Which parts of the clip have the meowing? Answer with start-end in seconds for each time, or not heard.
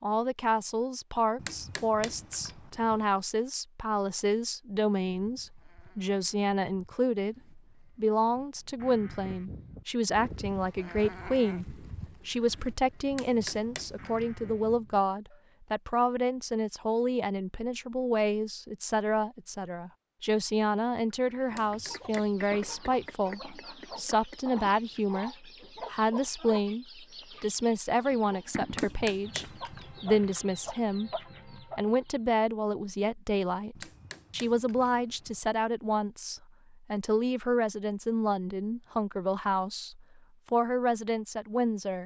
not heard.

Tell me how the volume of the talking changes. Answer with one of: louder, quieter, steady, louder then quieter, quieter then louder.
steady.